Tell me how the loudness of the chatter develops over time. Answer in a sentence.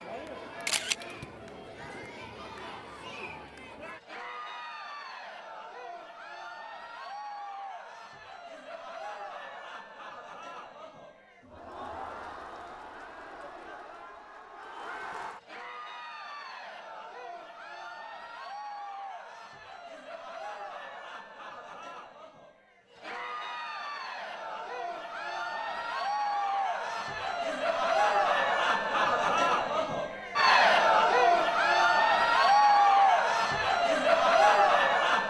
The volume of the chatter goes up.